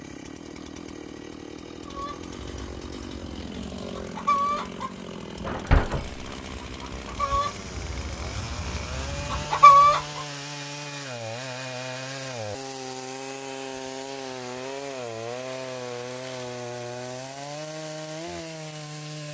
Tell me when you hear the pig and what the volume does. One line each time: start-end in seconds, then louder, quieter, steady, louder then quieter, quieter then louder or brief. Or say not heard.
not heard.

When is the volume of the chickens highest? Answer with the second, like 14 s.
10 s.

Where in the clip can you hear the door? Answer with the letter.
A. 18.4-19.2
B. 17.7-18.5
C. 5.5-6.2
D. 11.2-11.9
C.